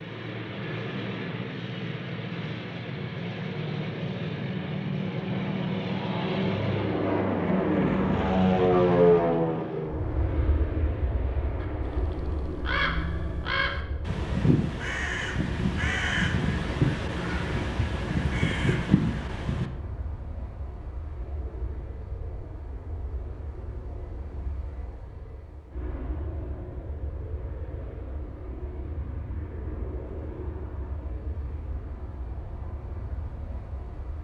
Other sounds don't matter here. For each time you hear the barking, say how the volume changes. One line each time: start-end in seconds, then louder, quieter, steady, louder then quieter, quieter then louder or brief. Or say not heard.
not heard.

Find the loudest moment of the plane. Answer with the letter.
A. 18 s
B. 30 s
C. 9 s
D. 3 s
C.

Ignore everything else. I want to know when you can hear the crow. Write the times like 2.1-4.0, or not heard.
11.6-19.6.